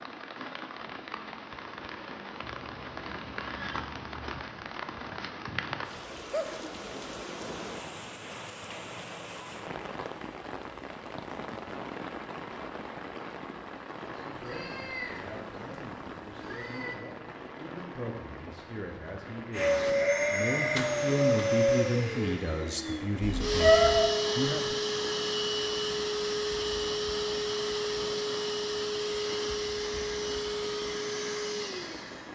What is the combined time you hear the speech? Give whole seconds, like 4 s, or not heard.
11 s.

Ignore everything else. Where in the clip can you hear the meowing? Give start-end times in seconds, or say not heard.
2.4-4.5, 14.3-16.9, 23.2-24.1.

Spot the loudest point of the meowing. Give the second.
24 s.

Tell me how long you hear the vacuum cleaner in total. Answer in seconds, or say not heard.
13 s.